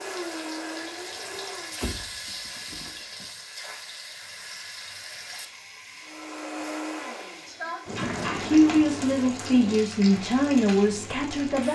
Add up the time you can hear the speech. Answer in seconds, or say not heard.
3 s.